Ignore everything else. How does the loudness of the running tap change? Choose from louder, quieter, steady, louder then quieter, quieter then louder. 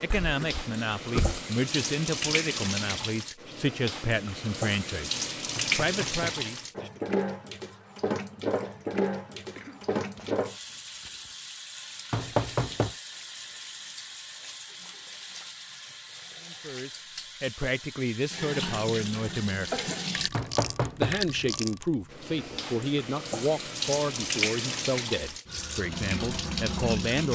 quieter then louder.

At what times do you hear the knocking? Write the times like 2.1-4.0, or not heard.
5.5-6.5, 12.1-12.9, 20.3-21.2.